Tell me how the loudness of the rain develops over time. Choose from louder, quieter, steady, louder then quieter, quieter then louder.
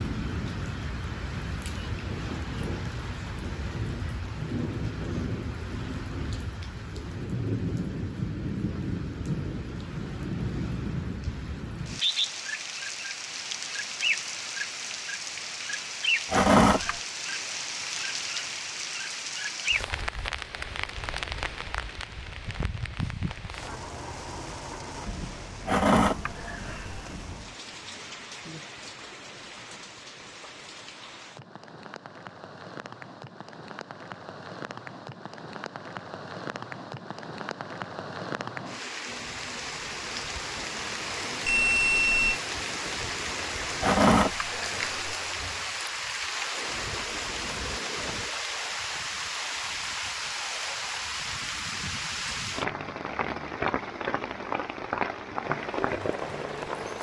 quieter then louder.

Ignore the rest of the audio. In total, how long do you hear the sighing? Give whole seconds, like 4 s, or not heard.
4 s.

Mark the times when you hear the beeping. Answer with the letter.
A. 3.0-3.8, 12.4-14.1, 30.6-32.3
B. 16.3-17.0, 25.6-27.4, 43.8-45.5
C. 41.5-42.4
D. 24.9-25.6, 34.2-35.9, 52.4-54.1
C.